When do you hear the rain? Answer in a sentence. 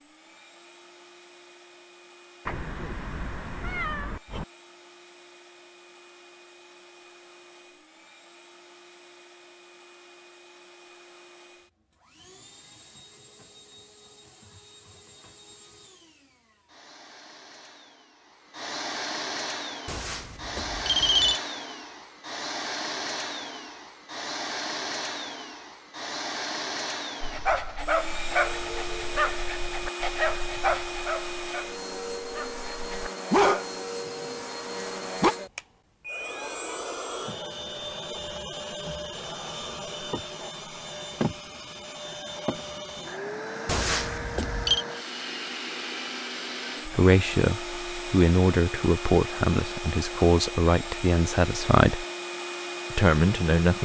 You can't hear the rain here.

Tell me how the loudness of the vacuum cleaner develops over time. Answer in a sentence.
The volume of the vacuum cleaner goes up.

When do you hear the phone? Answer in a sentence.
The phone can be heard from 19.9 to 21.4 s and from 43.6 to 44.9 s.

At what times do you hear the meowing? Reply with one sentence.
You can hear the meowing from 2.5 to 4.5 s.